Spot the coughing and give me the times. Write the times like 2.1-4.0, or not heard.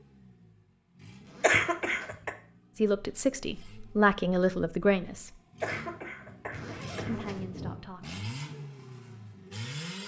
1.4-2.4, 5.6-7.8.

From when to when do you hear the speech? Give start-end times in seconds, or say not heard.
2.8-5.3, 7.0-8.2.